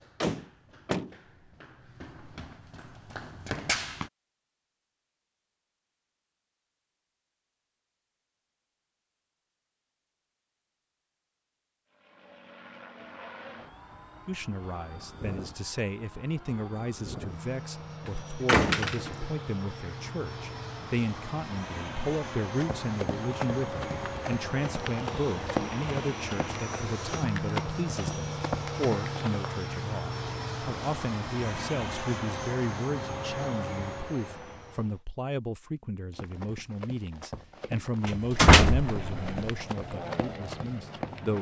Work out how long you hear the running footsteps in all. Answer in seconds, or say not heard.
16 s.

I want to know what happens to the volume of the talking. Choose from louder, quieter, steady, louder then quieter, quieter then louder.
steady.